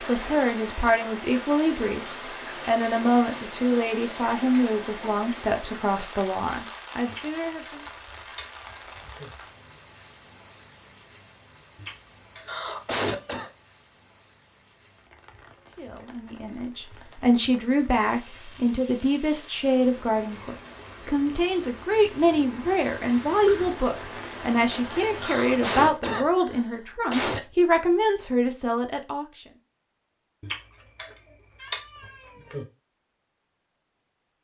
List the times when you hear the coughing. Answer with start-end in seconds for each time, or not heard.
12.3-13.5, 25.1-27.4.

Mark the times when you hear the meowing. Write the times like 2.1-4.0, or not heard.
7.0-9.3, 11.8-13.3, 30.4-32.6.